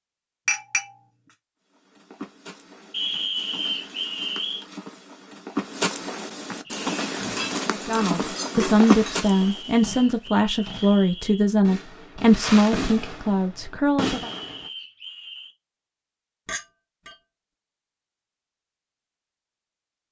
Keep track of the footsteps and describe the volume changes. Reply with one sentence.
The loudness of the footsteps goes up.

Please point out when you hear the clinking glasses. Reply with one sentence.
The clinking glasses can be heard from 0.5 to 1.4 s, from 7.3 to 9.2 s and from 16.4 to 17.1 s.